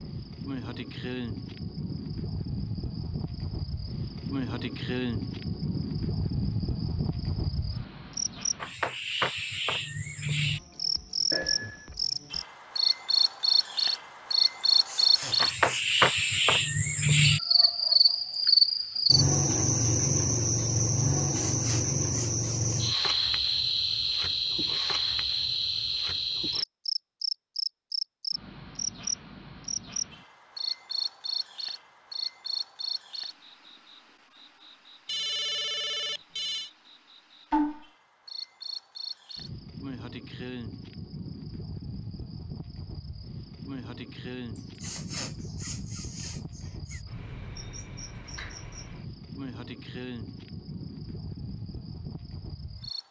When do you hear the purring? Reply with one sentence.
You can't hear the purring here.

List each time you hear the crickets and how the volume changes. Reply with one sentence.
The crickets can be heard from 0.0 to 53.0 s, getting louder then quieter.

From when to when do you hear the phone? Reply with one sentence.
You can hear the phone from 11.3 to 11.9 s and from 35.0 to 36.7 s.